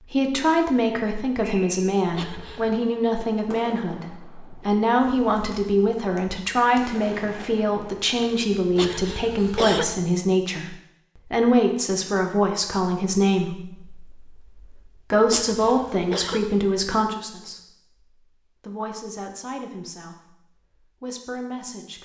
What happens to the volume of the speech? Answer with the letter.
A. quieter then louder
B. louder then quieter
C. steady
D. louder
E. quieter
E.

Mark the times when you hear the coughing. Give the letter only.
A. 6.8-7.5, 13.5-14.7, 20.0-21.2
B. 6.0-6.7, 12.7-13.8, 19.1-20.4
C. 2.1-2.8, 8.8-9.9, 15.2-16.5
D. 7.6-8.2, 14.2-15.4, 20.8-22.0
C.